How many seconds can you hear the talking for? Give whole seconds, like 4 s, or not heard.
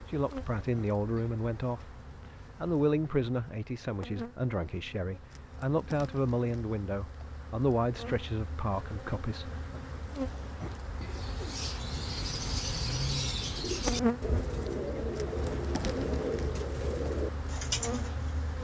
9 s.